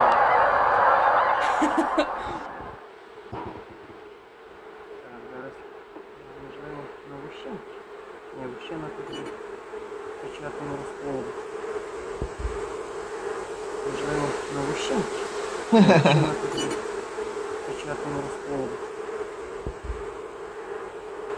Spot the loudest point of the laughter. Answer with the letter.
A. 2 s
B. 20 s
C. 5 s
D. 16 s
D.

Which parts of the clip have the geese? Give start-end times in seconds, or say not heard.
0.0-3.0.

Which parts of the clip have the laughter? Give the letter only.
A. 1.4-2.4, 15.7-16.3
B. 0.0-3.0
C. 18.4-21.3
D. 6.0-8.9
A.